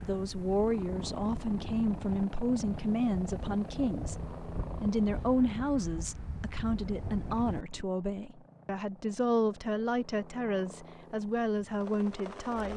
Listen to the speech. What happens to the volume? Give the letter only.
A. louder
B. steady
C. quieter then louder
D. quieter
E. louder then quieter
B.